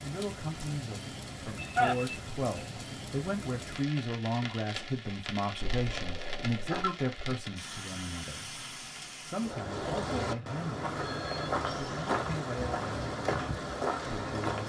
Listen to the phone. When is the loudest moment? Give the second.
2 s.